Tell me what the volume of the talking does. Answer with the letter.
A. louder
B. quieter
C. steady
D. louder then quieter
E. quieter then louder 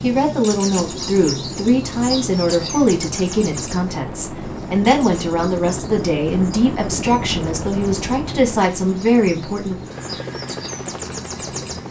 C.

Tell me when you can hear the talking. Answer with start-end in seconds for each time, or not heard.
0.0-9.8.